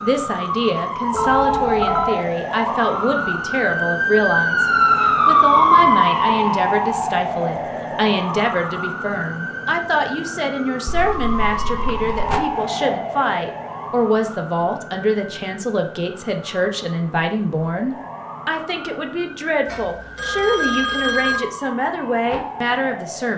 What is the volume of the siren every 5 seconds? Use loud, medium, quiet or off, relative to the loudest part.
loud, loud, medium, quiet, quiet.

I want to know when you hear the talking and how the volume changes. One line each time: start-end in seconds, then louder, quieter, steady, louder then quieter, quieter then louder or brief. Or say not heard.
0.0-23.3 steady.